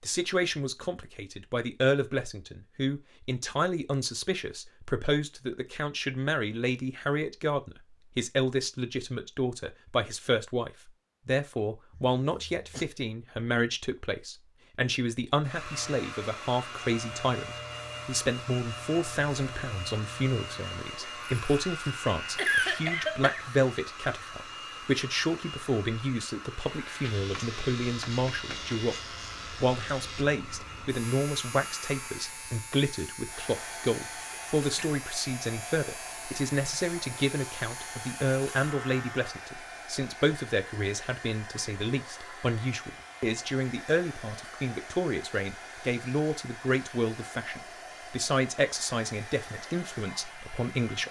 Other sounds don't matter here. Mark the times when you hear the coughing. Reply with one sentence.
The coughing can be heard from 11.9 to 12.8 s, from 22.4 to 23.5 s and from 34.3 to 35.0 s.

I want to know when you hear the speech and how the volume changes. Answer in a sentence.
The speech can be heard from 0.0 to 28.9 s, at a steady volume; and from 29.6 to 51.0 s, at a steady volume.